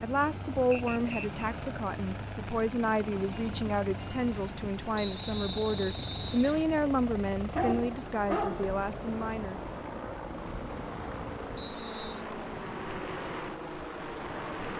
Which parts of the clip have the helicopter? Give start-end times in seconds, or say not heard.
0.0-14.7.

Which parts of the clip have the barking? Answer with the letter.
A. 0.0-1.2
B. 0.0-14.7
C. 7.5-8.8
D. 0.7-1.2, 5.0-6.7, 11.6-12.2
C.